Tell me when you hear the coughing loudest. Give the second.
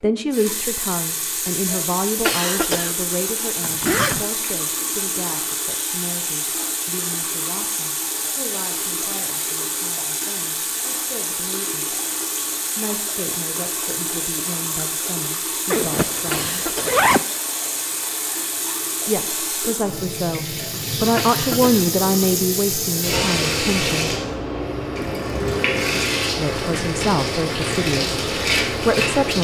2 s.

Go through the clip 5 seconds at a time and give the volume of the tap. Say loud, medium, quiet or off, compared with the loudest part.
medium, medium, medium, medium, loud, loud.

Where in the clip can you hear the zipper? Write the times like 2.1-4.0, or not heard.
3.6-4.2, 15.7-17.2.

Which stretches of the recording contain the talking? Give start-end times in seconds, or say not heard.
0.0-11.9, 12.8-16.6, 19.1-24.1, 26.4-29.3.